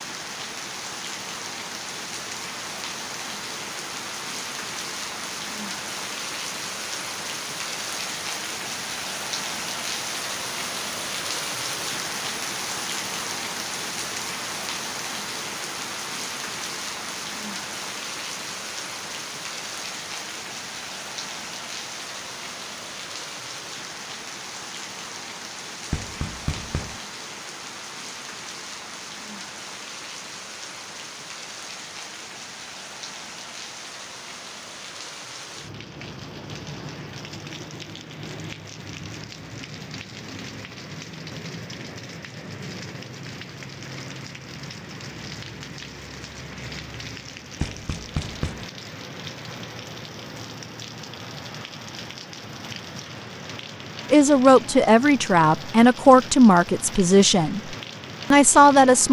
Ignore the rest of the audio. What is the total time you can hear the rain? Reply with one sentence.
You can hear the rain for 59 seconds altogether.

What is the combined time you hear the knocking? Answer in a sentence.
You can hear the knocking for 2 seconds altogether.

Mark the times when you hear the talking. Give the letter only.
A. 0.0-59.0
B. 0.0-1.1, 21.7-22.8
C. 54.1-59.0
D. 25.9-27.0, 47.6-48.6
C.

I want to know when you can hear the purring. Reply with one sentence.
You can't hear the purring here.